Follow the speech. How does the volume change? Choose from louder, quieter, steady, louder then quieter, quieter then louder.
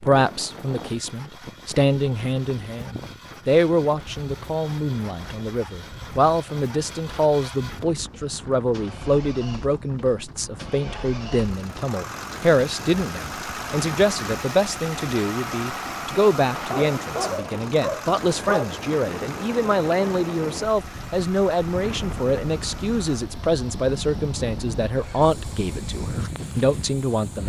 steady.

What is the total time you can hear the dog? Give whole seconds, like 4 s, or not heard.
2 s.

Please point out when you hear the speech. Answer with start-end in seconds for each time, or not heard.
0.0-27.4.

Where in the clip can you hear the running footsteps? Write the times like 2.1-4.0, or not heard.
not heard.